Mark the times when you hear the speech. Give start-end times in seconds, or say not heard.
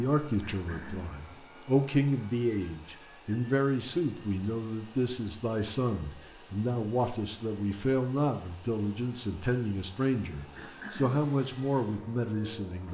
0.0-12.8.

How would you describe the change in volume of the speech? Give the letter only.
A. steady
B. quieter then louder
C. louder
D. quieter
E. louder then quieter
A.